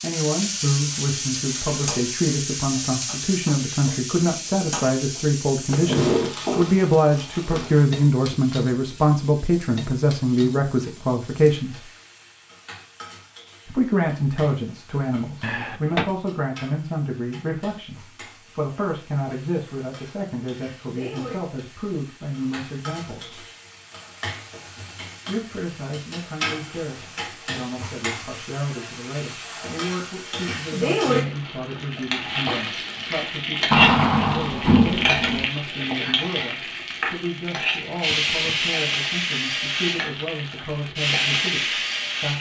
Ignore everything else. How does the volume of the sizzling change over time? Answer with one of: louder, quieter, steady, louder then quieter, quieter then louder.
quieter then louder.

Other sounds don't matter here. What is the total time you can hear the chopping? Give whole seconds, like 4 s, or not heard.
not heard.